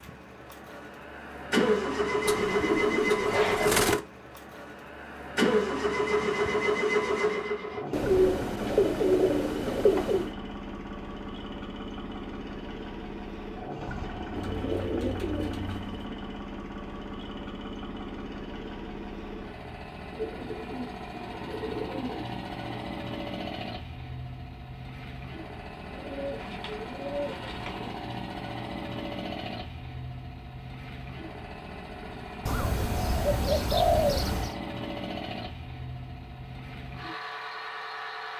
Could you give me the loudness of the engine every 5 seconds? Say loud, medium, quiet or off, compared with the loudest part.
loud, loud, medium, medium, medium, medium, medium, medium.